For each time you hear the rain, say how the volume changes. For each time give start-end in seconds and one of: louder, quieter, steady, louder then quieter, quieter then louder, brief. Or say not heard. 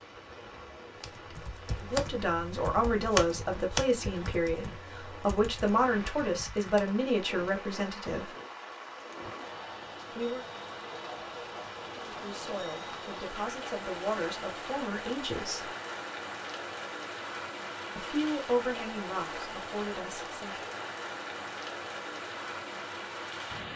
0.0-23.7 louder.